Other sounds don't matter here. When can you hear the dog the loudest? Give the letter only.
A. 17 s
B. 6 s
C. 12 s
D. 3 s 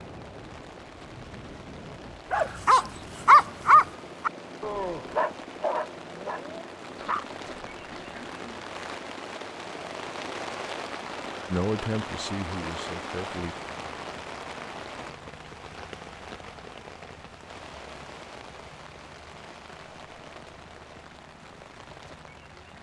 D.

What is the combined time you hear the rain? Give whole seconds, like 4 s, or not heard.
23 s.